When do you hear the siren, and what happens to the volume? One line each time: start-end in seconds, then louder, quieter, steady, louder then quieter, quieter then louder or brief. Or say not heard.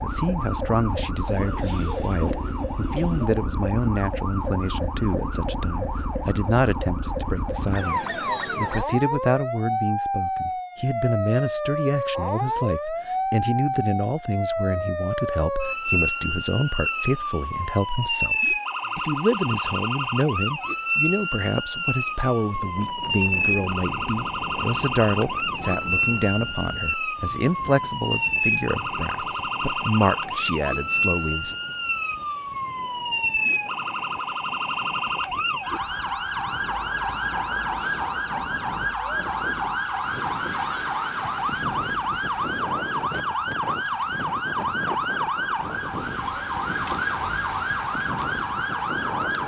0.0-49.4 steady.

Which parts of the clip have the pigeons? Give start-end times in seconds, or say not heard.
1.3-3.3.